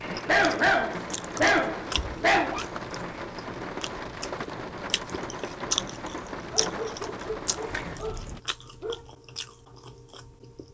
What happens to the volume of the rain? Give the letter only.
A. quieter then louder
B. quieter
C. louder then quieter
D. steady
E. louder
D.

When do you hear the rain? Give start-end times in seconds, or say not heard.
0.0-8.4.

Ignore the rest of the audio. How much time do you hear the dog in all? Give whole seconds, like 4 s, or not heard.
5 s.